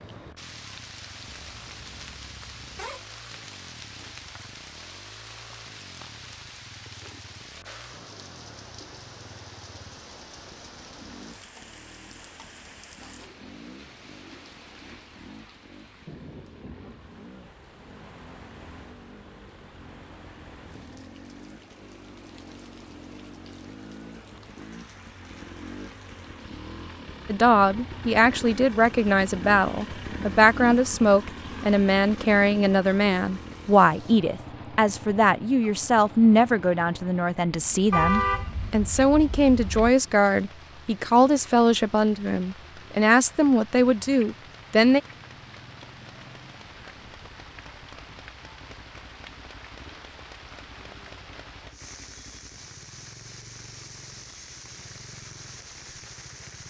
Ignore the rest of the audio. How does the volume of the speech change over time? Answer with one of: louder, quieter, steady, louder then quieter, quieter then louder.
steady.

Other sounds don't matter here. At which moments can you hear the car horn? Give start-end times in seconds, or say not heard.
1.3-3.0, 37.9-40.0.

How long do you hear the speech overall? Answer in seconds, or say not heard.
18 s.